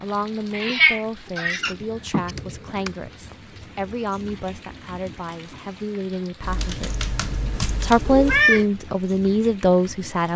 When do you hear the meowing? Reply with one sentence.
The meowing can be heard from 0.6 to 2.2 s and from 7.7 to 8.7 s.